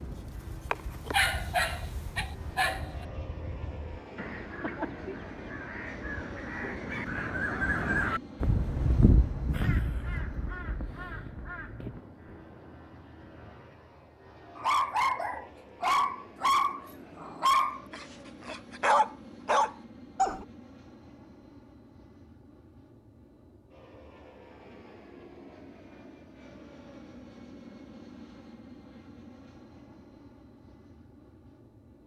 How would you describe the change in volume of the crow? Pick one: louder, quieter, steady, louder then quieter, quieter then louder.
louder then quieter.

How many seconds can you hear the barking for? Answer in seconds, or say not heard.
9 s.